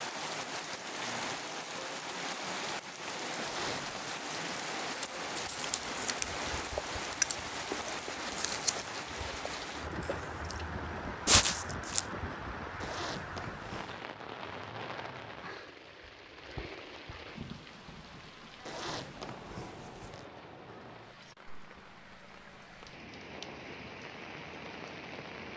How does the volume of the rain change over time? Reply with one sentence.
The volume of the rain goes down.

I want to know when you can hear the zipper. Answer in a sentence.
The zipper can be heard from 3.4 to 4.0 s, from 12.8 to 14.0 s and from 18.6 to 20.2 s.